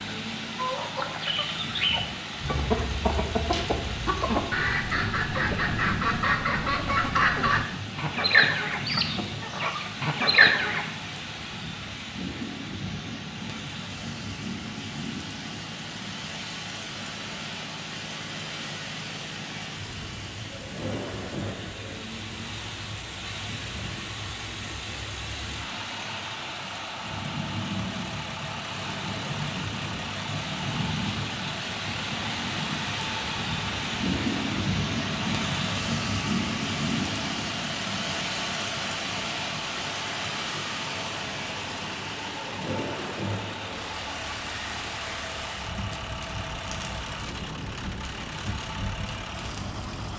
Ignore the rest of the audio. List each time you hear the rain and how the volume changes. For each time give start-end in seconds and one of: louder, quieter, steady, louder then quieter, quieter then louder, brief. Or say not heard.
0.0-50.1 louder then quieter.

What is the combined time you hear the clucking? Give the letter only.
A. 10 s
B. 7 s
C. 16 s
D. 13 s
A.